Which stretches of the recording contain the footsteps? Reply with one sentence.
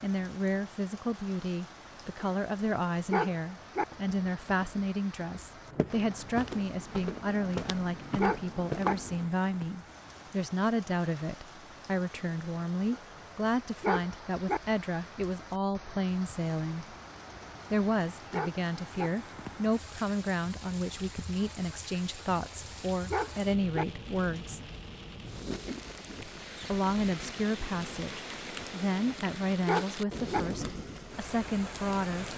The footsteps can be heard from 3.8 to 9.3 s.